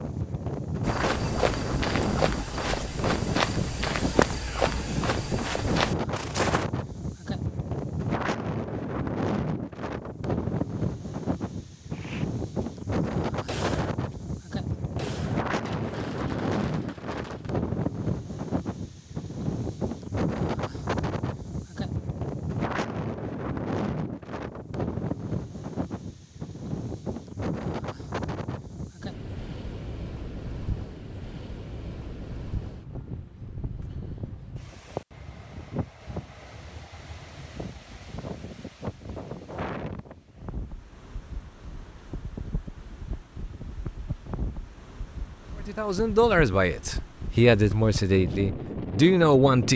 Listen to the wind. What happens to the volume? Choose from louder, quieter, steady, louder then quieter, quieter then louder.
quieter.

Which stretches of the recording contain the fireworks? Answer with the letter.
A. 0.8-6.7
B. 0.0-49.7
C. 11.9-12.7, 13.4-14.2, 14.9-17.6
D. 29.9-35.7
C.